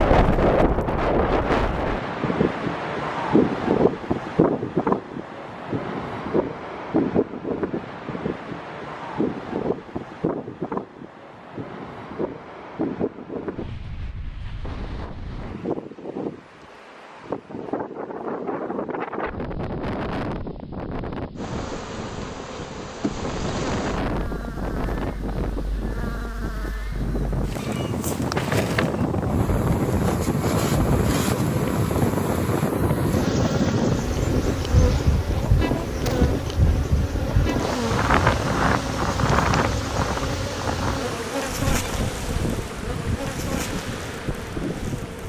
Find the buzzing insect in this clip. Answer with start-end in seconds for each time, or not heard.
21.4-45.2.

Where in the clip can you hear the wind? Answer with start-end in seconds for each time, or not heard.
0.0-45.2.